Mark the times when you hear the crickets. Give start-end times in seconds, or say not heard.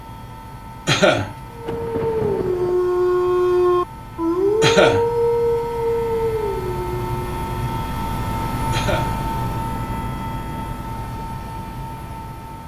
not heard.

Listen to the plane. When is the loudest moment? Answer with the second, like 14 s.
9 s.